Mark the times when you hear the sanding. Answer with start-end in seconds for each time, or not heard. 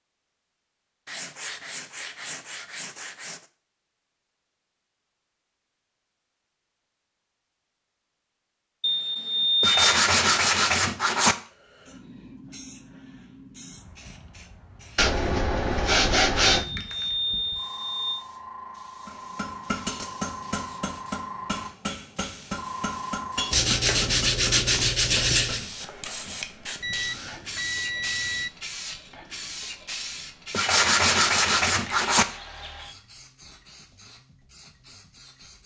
1.1-3.4, 9.6-11.3, 14.9-16.6, 23.5-25.6, 30.5-32.2.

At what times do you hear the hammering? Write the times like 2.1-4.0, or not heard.
19.1-25.9.